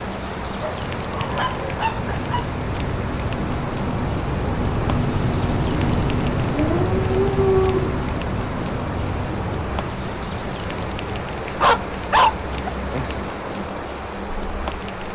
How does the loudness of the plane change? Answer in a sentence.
The loudness of the plane goes up, then down.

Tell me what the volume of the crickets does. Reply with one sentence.
The loudness of the crickets stays about the same.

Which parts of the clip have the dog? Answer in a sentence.
You can hear the dog from 0.6 to 2.5 s, from 6.5 to 8.0 s and from 11.5 to 13.3 s.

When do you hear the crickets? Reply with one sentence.
The crickets can be heard from 0.0 to 15.1 s.